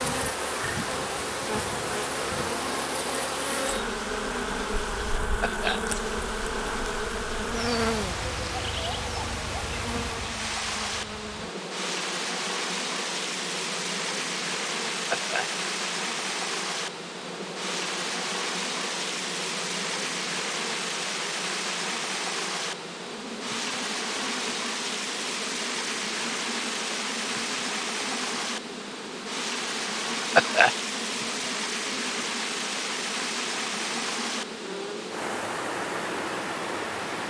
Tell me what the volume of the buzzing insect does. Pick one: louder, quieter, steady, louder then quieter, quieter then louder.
quieter.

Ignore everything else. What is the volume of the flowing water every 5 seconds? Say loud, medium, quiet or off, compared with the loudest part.
medium, medium, loud, loud, loud, loud, loud, loud.